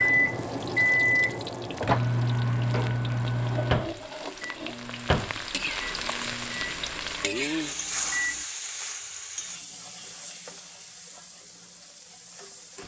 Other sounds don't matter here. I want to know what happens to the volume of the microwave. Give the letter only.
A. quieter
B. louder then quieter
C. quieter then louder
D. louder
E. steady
A.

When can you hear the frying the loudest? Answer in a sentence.
The volume of the frying peaks at 8 seconds.